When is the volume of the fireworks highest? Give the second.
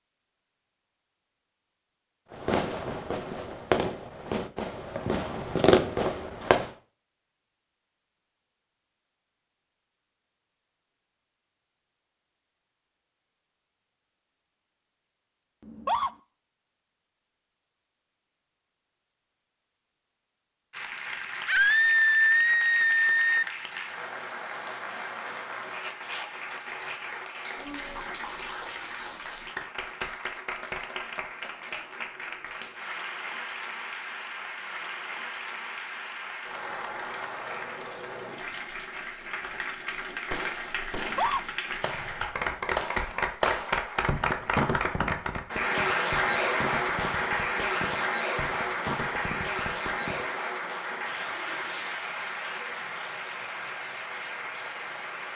6 s.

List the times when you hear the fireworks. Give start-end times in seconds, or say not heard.
2.3-6.7, 40.3-50.3.